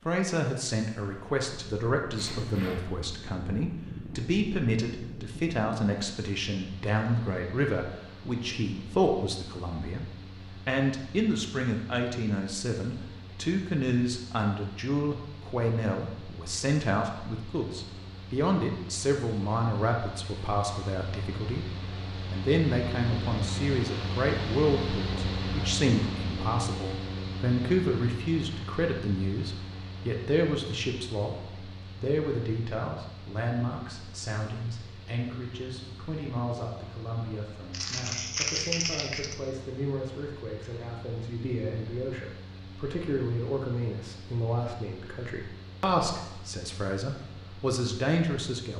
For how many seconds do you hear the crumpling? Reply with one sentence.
You can hear the crumpling for 2 seconds altogether.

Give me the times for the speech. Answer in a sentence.
You can hear the speech from 0.1 to 10.1 s and from 10.7 to 48.7 s.